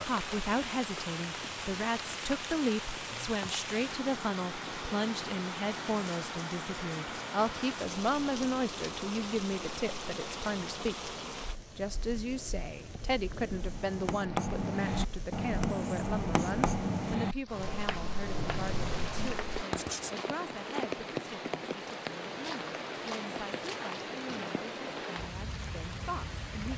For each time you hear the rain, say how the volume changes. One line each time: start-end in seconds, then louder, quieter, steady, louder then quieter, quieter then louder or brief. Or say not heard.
0.0-26.7 quieter then louder.